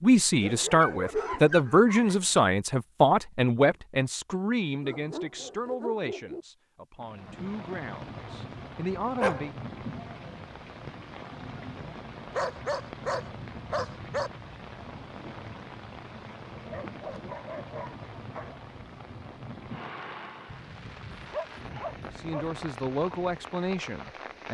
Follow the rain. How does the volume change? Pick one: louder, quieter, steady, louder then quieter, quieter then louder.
steady.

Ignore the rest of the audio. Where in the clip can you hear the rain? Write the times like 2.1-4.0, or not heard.
7.0-24.4.